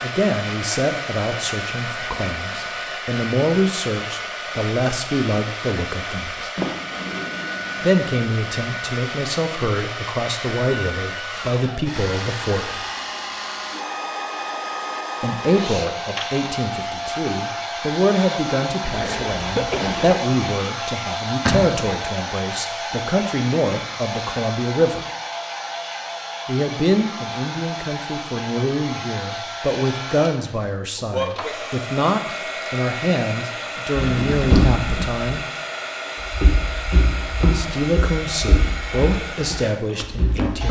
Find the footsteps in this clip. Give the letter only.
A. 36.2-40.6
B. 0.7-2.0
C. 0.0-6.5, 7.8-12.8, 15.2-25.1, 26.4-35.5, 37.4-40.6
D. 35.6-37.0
A.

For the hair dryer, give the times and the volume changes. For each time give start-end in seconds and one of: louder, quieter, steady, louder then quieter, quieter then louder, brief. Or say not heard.
0.0-40.6 steady.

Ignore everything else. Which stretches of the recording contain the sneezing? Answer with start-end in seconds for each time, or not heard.
18.8-20.2.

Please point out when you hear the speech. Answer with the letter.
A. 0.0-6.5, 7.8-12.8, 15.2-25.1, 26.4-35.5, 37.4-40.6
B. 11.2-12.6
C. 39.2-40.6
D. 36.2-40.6
A.